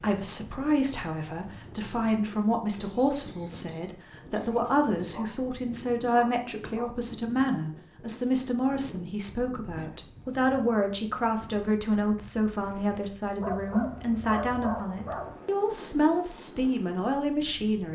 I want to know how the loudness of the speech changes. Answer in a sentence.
The volume of the speech stays about the same.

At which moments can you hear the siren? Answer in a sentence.
You can't hear the siren here.